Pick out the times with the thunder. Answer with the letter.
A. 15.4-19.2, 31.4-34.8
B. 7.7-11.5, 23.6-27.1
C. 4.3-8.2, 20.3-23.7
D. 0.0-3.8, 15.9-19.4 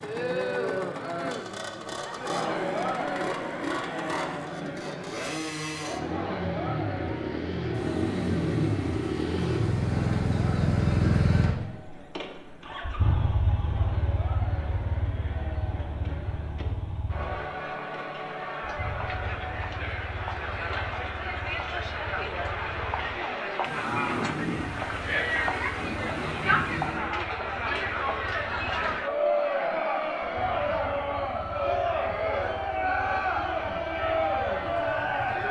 B.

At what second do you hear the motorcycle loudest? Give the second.
11 s.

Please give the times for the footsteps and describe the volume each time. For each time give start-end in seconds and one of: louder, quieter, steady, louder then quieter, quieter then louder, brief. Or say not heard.
not heard.